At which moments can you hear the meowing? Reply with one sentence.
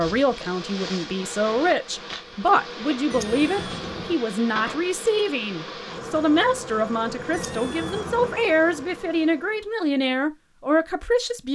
You can hear the meowing from 3.1 to 4.2 s and from 7.3 to 8.4 s.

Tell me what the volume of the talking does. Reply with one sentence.
The volume of the talking stays about the same.